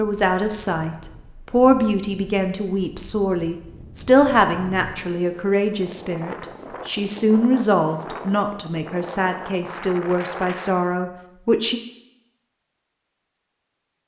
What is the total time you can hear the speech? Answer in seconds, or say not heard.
12 s.